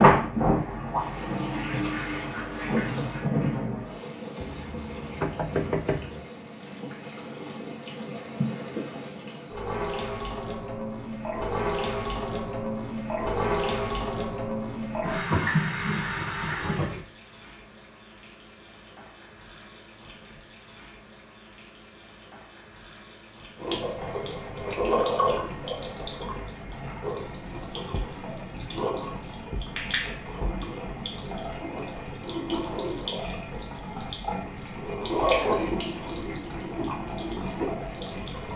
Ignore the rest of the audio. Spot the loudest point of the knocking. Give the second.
6 s.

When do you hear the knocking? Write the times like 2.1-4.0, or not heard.
4.4-6.2.